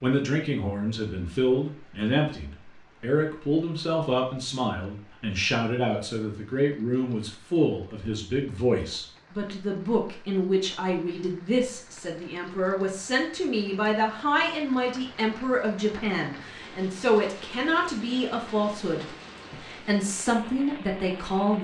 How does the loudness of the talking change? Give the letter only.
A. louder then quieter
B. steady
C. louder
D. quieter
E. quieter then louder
B.